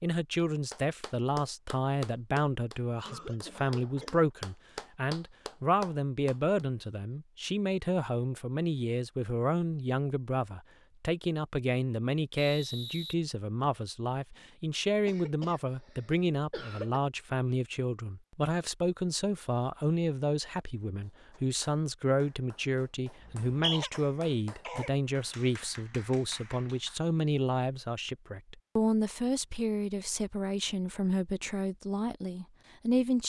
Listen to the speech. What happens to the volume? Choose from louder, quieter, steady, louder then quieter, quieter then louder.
steady.